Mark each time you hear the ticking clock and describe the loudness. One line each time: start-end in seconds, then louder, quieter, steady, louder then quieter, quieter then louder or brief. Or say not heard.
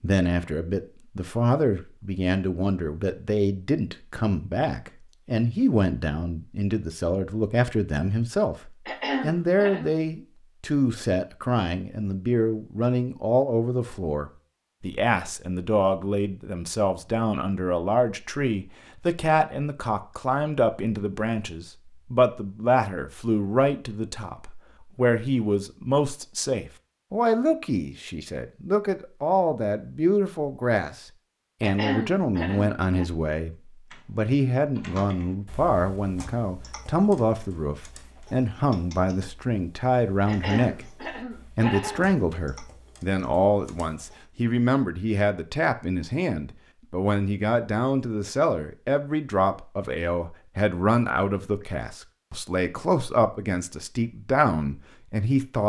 not heard.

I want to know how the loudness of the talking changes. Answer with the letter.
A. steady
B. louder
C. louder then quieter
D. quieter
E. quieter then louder
A.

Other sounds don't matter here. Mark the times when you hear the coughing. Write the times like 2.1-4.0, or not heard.
8.8-9.9, 31.6-33.0, 40.2-42.1.